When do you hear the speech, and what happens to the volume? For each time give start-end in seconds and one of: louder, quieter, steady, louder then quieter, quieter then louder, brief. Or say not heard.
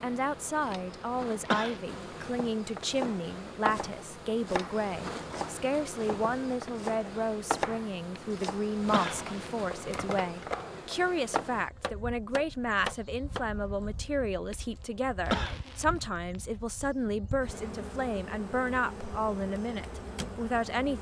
0.0-20.9 steady.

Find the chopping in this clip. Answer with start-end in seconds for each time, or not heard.
2.9-13.4.